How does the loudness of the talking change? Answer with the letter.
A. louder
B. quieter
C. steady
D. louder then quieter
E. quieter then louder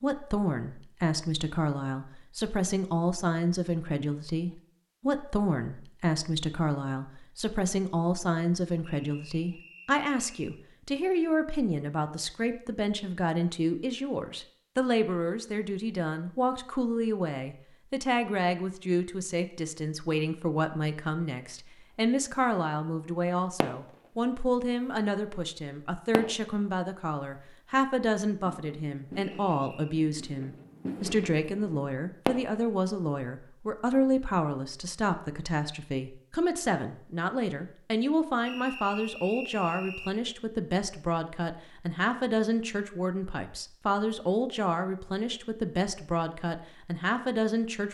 C.